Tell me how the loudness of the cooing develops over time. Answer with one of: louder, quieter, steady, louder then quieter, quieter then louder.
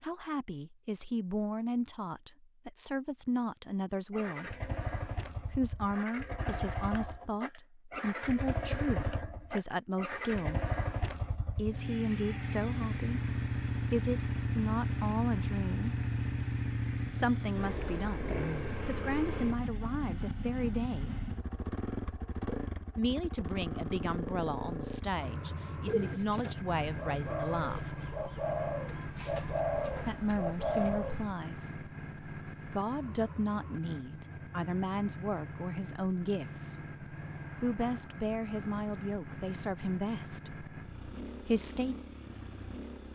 louder.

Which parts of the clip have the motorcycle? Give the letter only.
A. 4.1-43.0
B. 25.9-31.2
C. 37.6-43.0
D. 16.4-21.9
A.